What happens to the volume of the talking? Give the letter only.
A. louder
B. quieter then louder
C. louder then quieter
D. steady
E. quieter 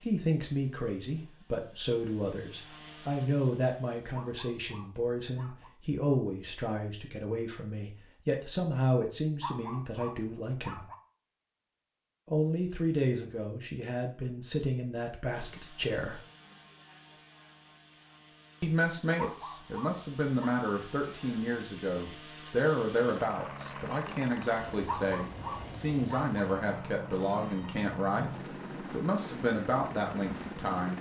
D.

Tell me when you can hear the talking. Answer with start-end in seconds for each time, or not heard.
0.0-10.8, 12.2-16.2, 18.6-30.9.